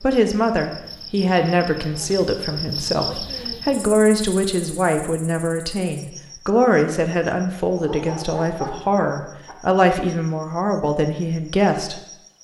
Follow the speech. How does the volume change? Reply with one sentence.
The volume of the speech stays about the same.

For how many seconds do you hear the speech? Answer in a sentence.
The speech can be heard for 12 seconds in total.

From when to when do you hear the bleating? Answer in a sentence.
You can't hear the bleating here.